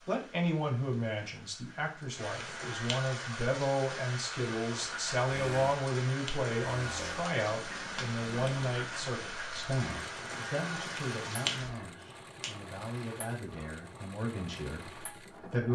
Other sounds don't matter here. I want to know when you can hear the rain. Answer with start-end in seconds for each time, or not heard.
0.0-11.8.